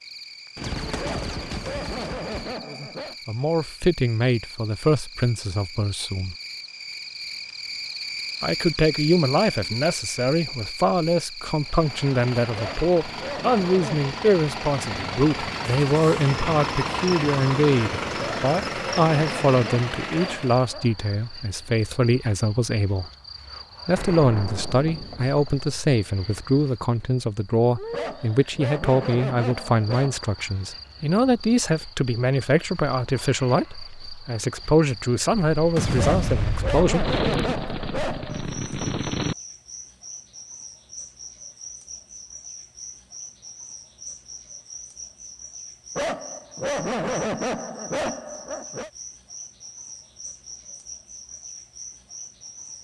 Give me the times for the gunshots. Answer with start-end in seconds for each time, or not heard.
0.6-2.5, 23.9-25.7, 35.5-39.4.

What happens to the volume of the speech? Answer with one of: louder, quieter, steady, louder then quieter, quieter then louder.
steady.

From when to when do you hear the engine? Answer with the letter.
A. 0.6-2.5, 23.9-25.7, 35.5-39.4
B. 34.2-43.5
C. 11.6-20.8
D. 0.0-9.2
C.